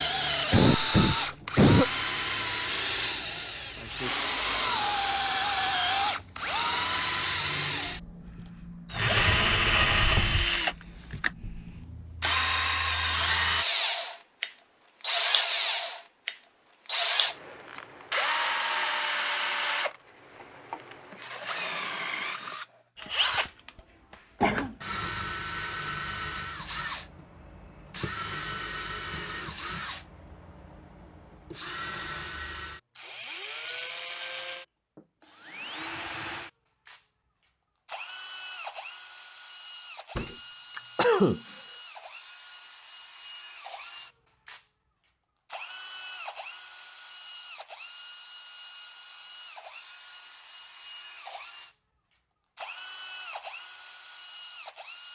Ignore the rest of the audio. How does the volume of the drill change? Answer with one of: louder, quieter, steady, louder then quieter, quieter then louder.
quieter.